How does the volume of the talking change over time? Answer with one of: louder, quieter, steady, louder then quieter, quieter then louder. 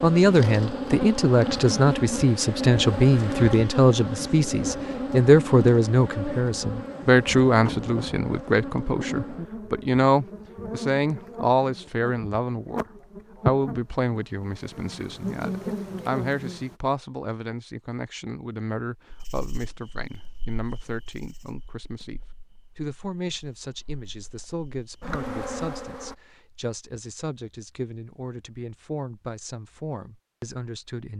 quieter.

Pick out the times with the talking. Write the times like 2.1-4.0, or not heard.
0.0-12.8, 13.4-31.1.